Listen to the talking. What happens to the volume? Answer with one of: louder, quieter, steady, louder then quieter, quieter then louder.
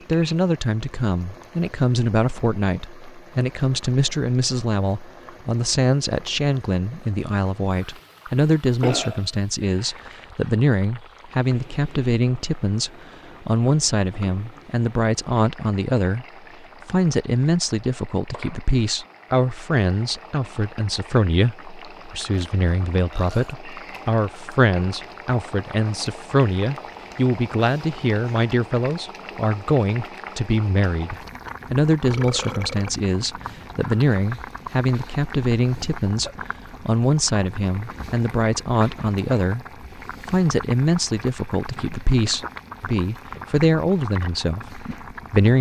steady.